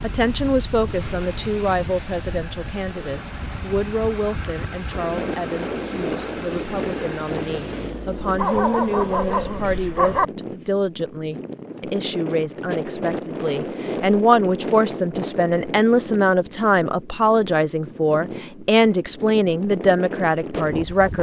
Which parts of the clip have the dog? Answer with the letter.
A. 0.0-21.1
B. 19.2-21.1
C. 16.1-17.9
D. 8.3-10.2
D.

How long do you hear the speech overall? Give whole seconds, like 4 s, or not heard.
21 s.